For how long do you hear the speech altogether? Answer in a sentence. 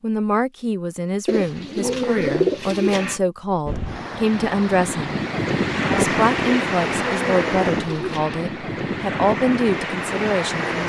The speech can be heard for 10 seconds in total.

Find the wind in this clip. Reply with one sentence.
The wind can be heard from 3.6 to 10.8 s.